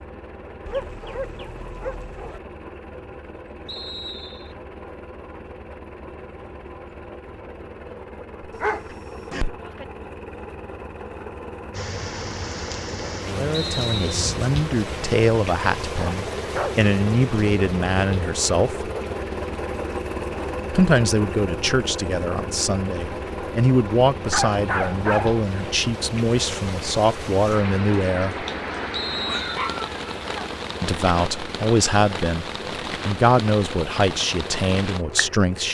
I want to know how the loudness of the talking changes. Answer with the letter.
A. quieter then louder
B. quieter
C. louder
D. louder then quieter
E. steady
E.